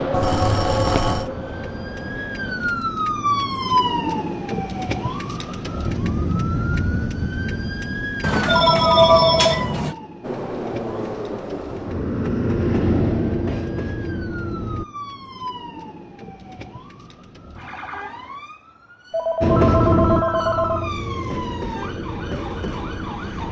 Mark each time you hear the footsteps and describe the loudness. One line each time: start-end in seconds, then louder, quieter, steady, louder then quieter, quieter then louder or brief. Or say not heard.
not heard.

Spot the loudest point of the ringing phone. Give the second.
9 s.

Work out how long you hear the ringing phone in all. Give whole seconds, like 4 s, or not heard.
5 s.